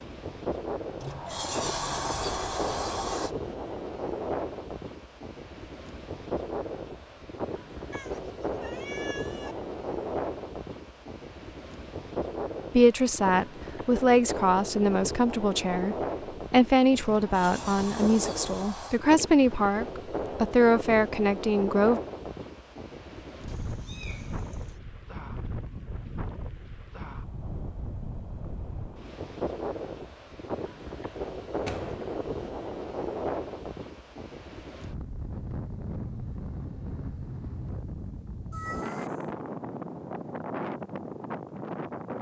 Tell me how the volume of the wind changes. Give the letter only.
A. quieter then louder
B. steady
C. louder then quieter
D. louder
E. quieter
B.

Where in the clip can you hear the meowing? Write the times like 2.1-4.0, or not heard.
7.9-9.6, 23.4-24.8, 38.5-39.4.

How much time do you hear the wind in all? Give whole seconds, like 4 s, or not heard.
42 s.